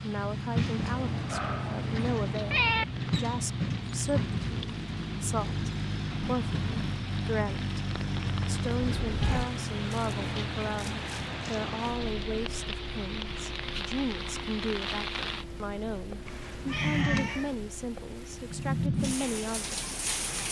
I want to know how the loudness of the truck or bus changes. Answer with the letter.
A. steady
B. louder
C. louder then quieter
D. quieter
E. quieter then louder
D.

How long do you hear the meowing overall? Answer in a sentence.
The meowing can be heard for 4 seconds in total.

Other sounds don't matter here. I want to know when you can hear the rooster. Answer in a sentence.
You can't hear the rooster here.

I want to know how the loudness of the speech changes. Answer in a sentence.
The loudness of the speech stays about the same.